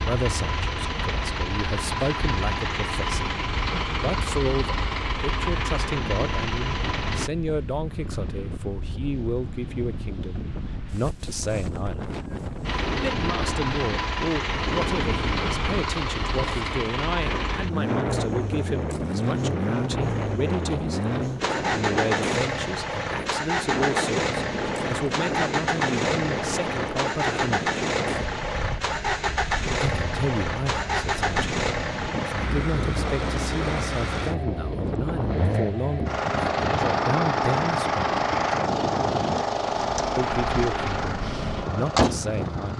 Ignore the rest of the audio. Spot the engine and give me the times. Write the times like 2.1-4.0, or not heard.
0.0-7.3, 12.6-42.7.